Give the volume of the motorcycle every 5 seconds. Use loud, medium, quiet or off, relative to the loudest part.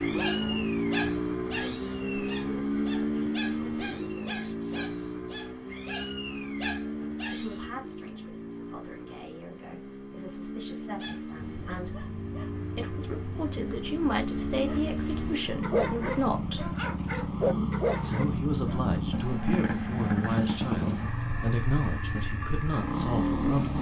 loud, medium, medium, loud, loud.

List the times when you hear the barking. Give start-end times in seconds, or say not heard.
0.0-7.7, 11.0-18.9.